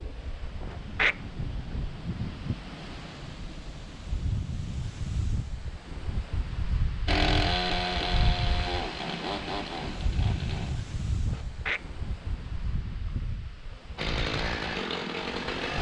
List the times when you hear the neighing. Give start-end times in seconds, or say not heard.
not heard.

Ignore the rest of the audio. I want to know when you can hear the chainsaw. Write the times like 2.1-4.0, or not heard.
7.0-11.4, 13.9-15.7.